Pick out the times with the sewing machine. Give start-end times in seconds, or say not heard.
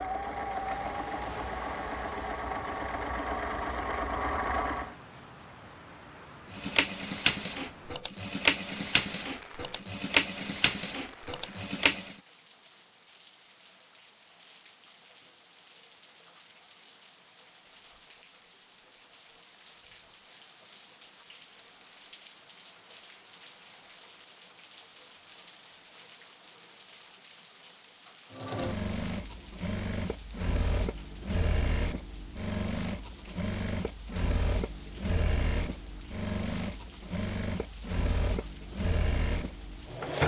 0.0-5.0, 6.5-12.2, 28.3-40.2.